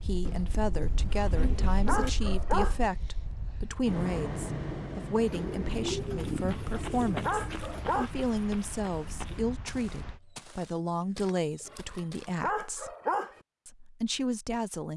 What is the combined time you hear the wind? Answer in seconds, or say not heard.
10 s.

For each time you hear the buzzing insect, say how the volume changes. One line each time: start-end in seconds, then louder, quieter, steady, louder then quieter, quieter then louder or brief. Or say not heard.
not heard.